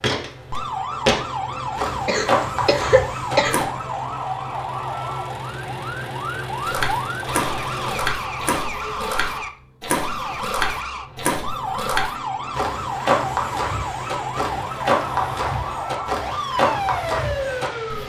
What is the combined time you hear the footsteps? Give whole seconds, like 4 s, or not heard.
15 s.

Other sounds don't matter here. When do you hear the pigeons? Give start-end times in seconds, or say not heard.
not heard.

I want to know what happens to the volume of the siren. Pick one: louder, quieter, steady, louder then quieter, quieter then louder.
steady.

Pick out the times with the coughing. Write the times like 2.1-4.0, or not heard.
2.0-3.5.